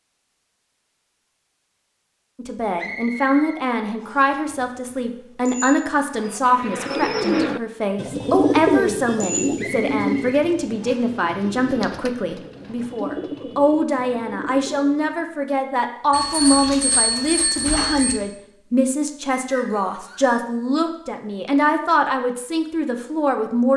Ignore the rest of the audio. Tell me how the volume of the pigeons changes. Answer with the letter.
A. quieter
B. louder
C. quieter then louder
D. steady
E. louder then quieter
A.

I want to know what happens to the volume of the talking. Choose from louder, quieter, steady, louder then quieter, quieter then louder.
steady.